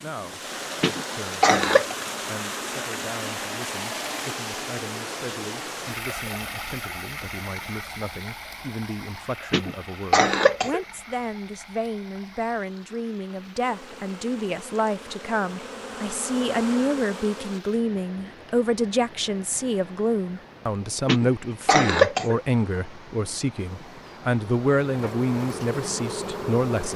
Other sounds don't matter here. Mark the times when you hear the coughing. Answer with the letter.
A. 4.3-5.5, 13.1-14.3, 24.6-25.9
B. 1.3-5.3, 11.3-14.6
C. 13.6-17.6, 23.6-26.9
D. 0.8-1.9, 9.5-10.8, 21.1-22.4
D.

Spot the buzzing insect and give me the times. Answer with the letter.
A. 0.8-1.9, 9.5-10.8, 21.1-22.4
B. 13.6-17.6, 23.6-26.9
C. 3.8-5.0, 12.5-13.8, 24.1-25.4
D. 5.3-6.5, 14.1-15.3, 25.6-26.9
B.